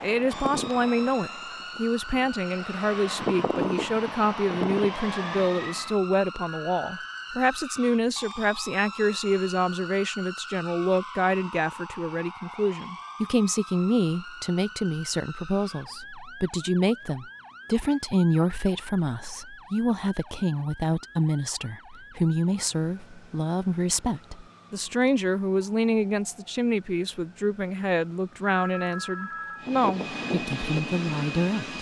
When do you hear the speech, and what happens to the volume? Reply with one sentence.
The speech can be heard from 0.0 to 31.7 s, at a steady volume.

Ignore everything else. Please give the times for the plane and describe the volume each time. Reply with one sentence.
The plane can be heard from 0.0 to 6.0 s, getting quieter then louder; and briefly from 29.6 to 31.7 s.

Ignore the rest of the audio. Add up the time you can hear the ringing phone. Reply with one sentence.
The ringing phone can be heard for 2 seconds in total.